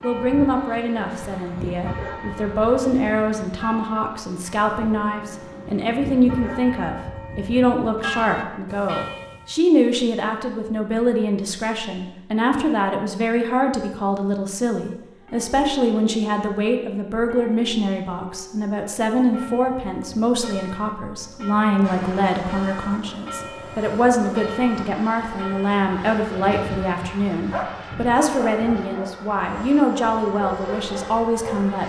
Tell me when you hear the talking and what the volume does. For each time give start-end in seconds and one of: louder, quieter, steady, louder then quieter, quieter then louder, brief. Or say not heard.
0.0-31.8 steady.